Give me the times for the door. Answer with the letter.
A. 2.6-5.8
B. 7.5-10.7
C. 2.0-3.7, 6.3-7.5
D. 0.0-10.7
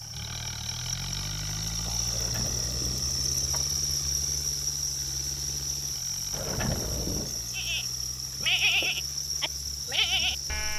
C.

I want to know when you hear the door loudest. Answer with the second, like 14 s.
7 s.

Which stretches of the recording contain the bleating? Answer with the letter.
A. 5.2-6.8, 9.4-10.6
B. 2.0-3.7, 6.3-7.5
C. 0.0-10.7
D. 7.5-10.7
D.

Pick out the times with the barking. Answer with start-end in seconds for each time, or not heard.
not heard.